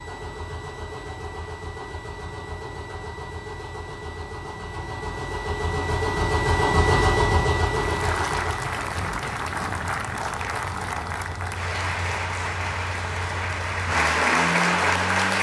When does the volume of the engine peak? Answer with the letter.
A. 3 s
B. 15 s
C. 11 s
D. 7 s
D.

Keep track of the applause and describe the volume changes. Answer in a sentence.
The loudness of the applause goes up.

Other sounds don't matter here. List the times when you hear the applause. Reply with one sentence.
The applause can be heard from 7.8 to 15.3 s.